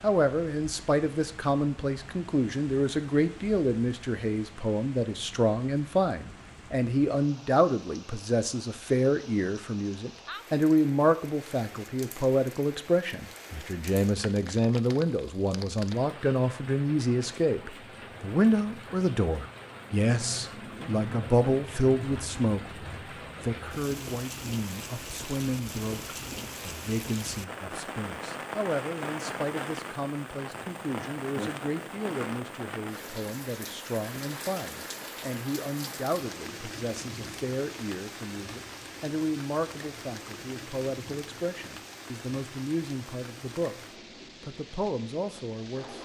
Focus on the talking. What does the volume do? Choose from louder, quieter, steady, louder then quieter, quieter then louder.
quieter.